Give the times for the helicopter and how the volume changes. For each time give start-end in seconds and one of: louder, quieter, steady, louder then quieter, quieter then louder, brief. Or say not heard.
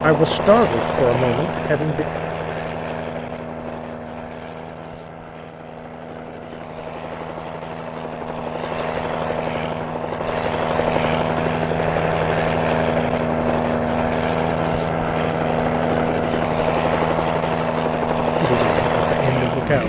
0.0-19.8 quieter then louder.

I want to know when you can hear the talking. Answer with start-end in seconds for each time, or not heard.
0.0-2.0, 18.4-19.8.